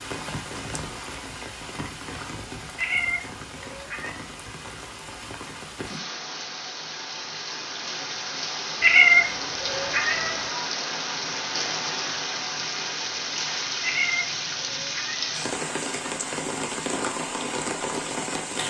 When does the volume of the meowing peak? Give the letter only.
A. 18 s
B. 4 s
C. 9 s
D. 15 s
C.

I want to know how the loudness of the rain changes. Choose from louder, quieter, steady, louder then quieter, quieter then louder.
louder.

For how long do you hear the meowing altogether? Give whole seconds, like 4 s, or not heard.
5 s.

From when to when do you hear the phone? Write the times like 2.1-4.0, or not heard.
not heard.